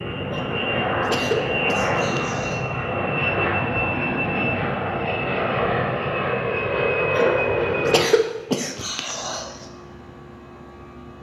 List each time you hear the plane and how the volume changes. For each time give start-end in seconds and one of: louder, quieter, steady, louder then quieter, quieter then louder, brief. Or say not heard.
0.0-11.1 quieter.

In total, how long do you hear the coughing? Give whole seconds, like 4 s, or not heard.
5 s.